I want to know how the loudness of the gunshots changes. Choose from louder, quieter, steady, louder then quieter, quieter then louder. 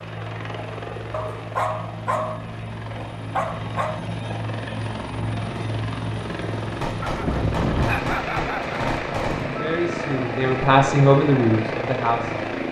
louder.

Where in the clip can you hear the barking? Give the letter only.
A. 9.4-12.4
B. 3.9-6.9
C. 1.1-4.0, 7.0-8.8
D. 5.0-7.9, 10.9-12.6
C.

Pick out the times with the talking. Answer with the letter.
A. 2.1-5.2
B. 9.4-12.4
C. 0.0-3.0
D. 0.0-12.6
B.